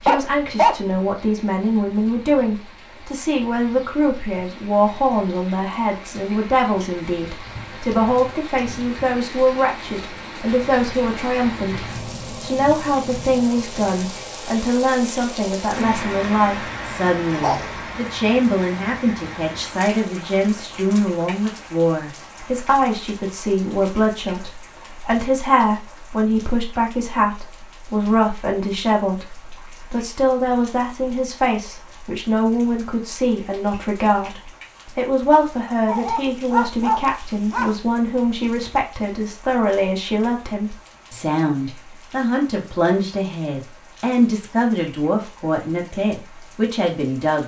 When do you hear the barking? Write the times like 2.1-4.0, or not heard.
0.1-0.9, 17.3-17.8, 35.9-37.7.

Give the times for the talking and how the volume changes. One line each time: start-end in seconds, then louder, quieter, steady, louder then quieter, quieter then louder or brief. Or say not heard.
0.0-47.4 steady.